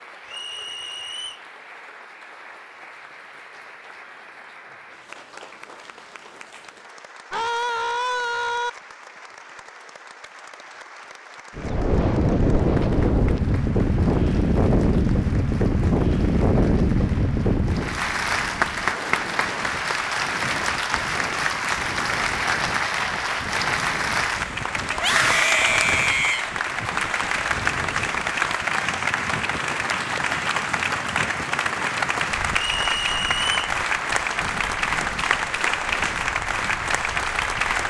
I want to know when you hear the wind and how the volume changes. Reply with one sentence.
You can hear the wind from 11.6 to 37.8 s, getting quieter.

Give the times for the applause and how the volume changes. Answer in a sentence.
You can hear the applause from 0.0 to 37.8 s, getting louder.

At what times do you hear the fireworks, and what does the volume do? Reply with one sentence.
The fireworks can't be heard in this clip.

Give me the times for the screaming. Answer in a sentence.
You can hear the screaming from 7.3 to 8.7 s and from 24.9 to 26.4 s.